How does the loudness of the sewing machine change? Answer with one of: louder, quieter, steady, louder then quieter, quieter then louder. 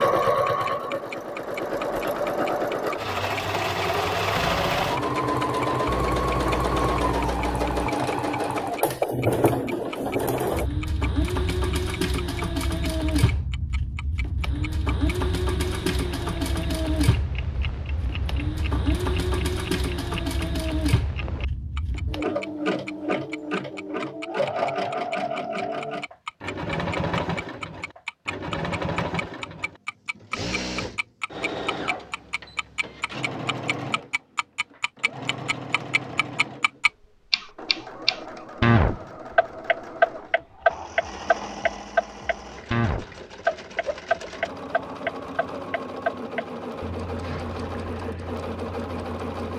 quieter.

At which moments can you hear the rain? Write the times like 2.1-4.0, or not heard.
not heard.